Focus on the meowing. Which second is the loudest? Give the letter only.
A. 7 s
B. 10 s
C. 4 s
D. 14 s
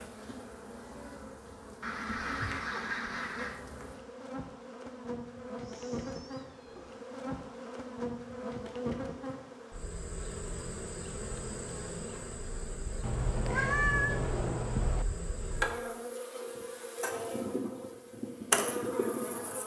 D.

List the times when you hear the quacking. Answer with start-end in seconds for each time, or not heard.
1.8-3.6.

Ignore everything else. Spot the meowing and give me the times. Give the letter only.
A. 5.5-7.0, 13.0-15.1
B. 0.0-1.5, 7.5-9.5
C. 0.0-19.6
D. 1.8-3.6
A.